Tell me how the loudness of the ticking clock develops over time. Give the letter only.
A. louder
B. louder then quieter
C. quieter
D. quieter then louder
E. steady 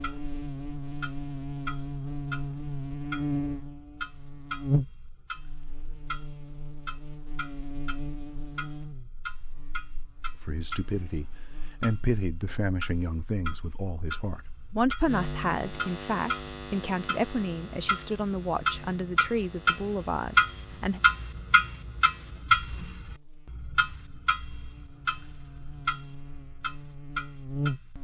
B.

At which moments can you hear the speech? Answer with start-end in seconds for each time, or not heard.
10.4-21.0.